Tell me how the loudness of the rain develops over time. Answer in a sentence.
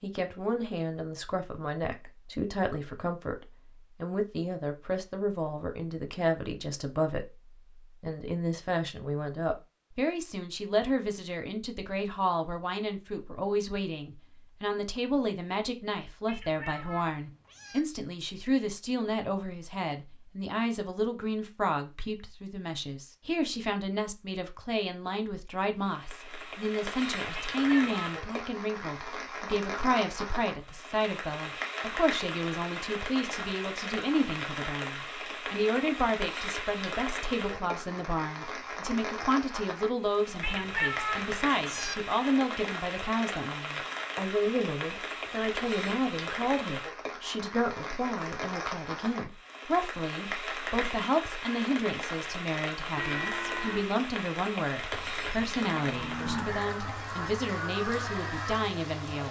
The loudness of the rain stays about the same.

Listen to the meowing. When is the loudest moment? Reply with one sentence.
The loudest moment of the meowing is at 41 seconds.